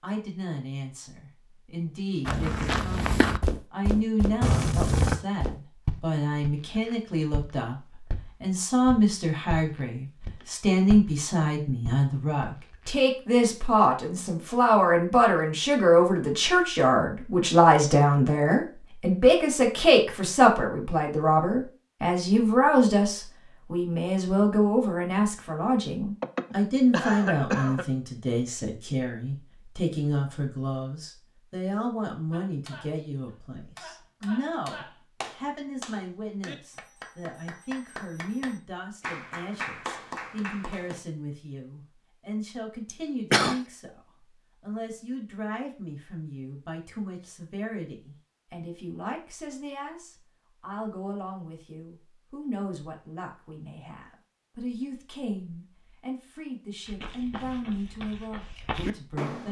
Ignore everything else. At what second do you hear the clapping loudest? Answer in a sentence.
The volume of the clapping peaks at 40 seconds.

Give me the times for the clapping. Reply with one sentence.
You can hear the clapping from 32.3 to 41.0 s.